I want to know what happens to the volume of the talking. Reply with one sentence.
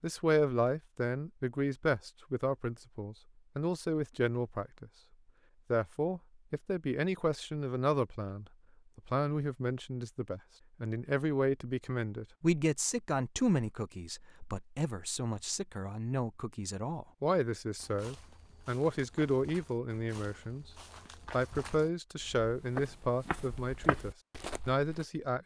The volume of the talking stays about the same.